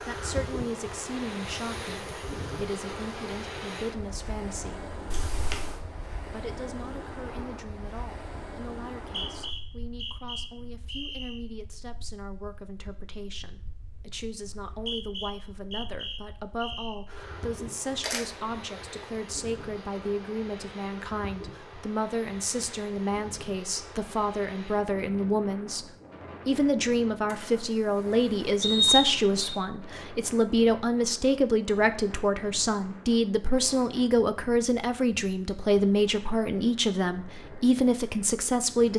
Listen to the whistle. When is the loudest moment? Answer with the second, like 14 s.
29 s.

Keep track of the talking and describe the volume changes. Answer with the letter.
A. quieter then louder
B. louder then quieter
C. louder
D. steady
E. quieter
C.